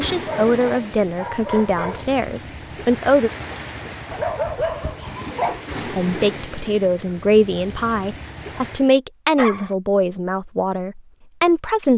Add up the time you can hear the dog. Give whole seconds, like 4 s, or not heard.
4 s.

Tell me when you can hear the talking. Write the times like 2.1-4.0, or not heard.
0.0-3.3, 5.9-11.9.